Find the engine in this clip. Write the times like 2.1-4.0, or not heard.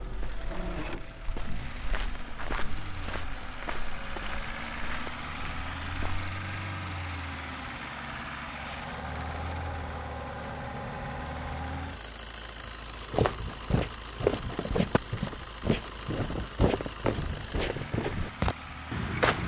0.0-19.4.